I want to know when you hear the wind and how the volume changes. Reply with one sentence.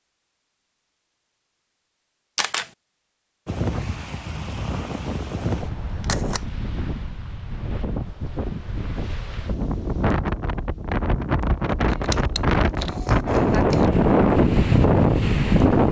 The wind can be heard from 3.5 to 15.8 s, getting louder.